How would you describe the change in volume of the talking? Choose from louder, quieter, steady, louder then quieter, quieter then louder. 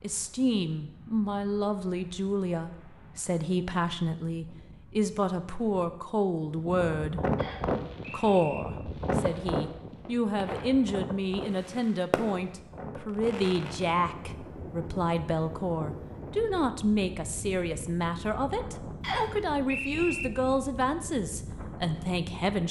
steady.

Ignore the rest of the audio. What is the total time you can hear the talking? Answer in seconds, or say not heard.
22 s.